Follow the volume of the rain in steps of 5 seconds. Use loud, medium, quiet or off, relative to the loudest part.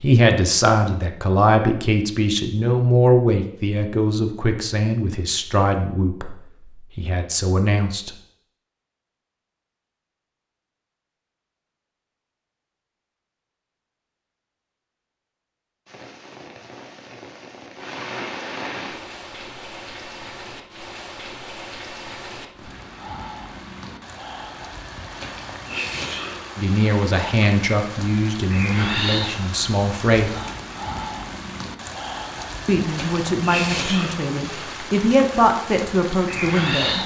off, off, off, medium, medium, loud, loud, loud.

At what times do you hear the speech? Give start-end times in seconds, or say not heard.
0.0-8.1, 26.6-30.4, 32.6-37.0.